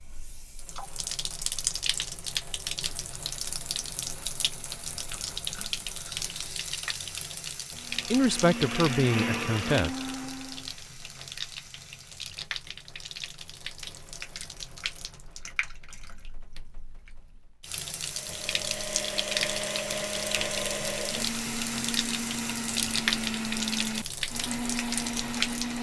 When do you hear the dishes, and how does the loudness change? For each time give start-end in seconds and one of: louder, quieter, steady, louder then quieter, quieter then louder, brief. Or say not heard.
not heard.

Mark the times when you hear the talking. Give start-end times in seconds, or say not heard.
8.1-9.9.